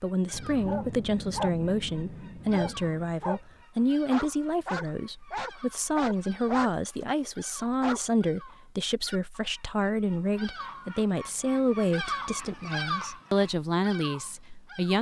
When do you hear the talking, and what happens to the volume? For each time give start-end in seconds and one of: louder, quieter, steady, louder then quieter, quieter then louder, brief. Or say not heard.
0.0-14.9 steady.